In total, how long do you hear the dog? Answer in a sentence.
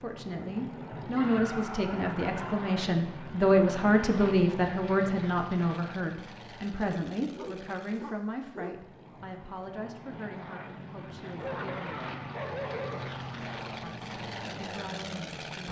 You can hear the dog for 5 seconds altogether.